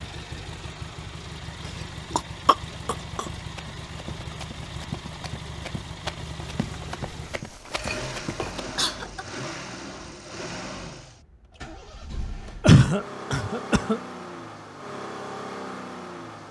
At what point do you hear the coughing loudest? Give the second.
13 s.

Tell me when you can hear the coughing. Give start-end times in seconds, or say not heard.
2.1-3.2, 7.7-9.2, 12.6-14.0.